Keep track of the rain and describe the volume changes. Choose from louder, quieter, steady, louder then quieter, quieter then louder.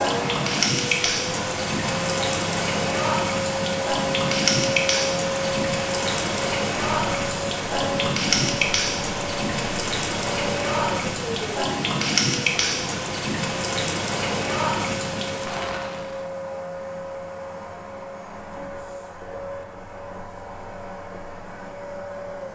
steady.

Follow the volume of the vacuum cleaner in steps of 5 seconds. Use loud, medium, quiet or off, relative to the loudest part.
loud, loud, medium, medium, medium.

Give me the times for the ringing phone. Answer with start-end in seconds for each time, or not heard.
not heard.